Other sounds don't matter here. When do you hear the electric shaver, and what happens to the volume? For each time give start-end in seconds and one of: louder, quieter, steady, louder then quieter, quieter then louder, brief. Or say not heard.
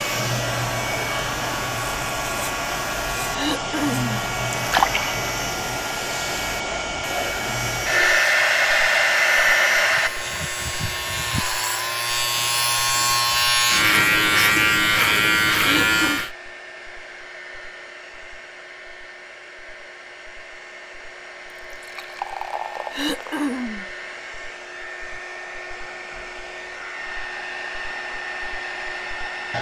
0.0-16.3 louder.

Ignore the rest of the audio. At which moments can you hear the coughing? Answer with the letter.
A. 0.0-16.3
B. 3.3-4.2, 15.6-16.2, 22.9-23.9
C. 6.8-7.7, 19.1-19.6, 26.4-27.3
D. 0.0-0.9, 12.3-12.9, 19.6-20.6
B.